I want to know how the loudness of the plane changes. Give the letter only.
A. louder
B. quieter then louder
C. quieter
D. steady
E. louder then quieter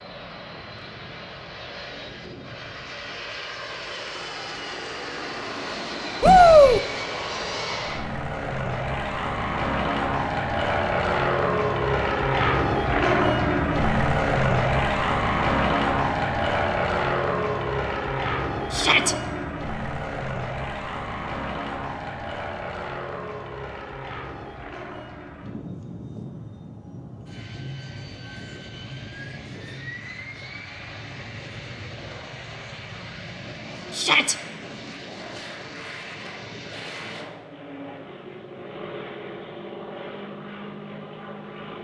E.